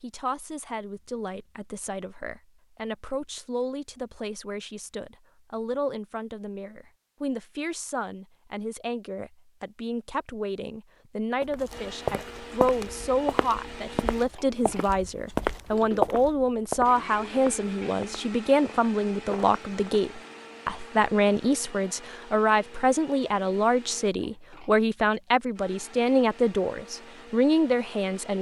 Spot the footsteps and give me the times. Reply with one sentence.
You can hear the footsteps from 11.4 to 20.1 s.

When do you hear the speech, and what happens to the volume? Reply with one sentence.
You can hear the speech from 0.0 to 28.3 s, getting louder.